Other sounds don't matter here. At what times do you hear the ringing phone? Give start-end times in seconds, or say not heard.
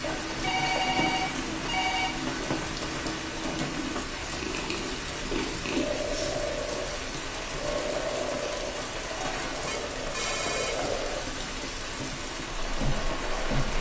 0.4-2.1, 5.2-6.3, 9.7-11.1.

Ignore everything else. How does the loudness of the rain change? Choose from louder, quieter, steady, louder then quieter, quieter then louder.
steady.